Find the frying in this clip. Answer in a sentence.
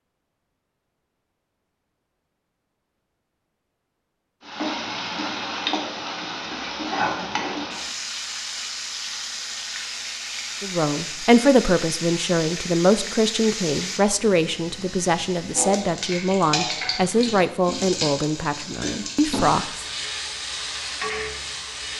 The frying can be heard from 4.4 to 21.9 s.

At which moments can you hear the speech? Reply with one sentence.
You can hear the speech from 10.6 to 19.9 s.